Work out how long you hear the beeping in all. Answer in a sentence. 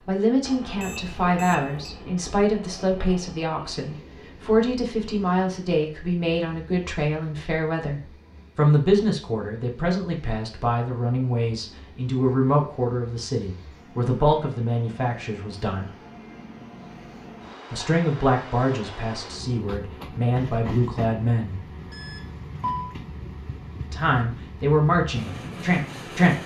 The beeping can be heard for 2 seconds in total.